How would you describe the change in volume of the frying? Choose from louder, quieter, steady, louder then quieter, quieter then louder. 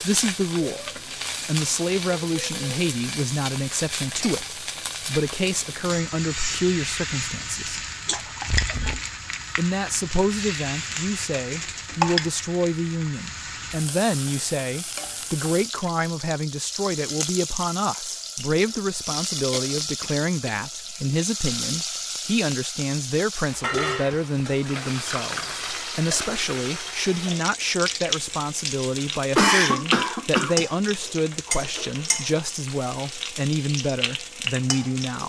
steady.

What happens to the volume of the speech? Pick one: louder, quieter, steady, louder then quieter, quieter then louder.
steady.